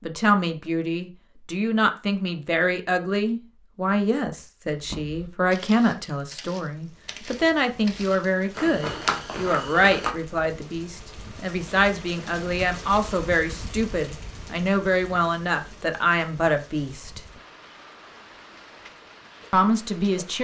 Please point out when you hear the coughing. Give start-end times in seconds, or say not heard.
not heard.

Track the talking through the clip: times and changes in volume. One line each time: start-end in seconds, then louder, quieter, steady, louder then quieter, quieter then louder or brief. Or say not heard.
0.0-17.2 steady
19.5-20.3 brief.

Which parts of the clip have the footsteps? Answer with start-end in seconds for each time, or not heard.
4.7-10.2.